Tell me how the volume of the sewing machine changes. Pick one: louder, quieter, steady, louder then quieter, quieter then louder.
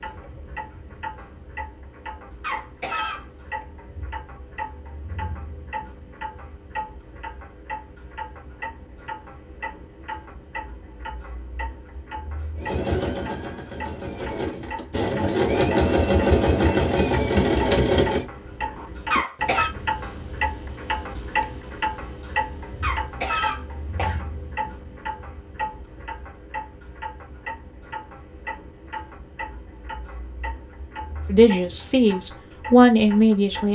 louder.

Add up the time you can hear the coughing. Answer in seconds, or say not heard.
3 s.